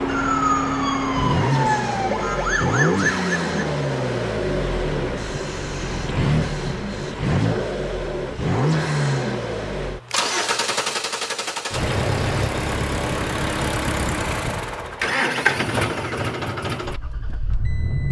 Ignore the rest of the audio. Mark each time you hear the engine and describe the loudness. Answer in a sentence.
You can hear the engine from 0.0 to 18.0 s, at a steady volume.